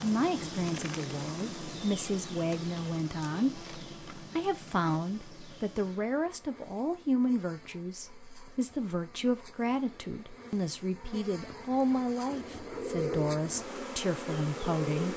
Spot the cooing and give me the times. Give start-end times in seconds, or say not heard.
12.2-15.1.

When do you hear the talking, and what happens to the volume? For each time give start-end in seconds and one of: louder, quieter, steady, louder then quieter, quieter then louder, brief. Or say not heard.
0.0-15.1 steady.